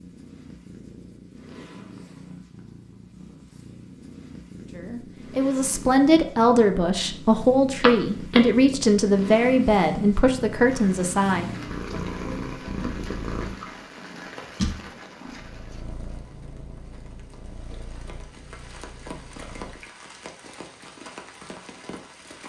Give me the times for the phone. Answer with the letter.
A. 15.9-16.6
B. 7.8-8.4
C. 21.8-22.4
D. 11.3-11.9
B.